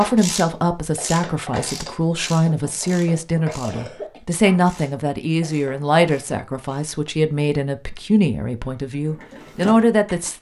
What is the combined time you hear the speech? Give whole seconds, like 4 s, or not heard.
10 s.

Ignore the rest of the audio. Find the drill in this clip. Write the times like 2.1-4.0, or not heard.
not heard.